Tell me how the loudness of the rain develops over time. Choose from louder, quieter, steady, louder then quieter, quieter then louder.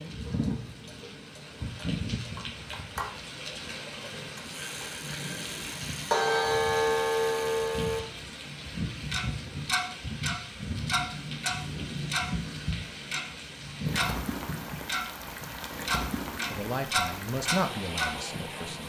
steady.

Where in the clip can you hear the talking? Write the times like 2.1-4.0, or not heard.
16.5-18.8.